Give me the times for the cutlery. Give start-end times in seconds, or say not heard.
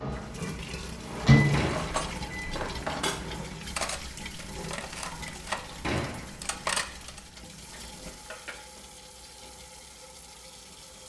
1.6-8.6.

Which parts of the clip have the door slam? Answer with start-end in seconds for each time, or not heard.
1.5-2.0, 5.8-6.5.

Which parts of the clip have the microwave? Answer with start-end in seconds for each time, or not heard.
0.0-3.5.